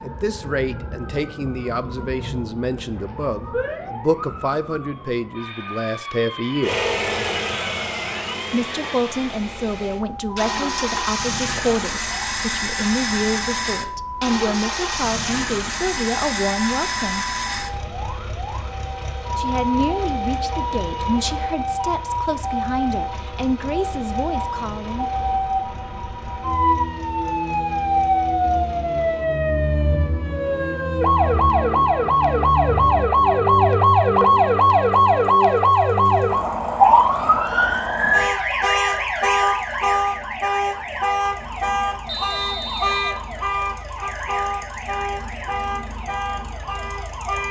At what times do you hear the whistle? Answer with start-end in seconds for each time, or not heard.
42.0-43.2.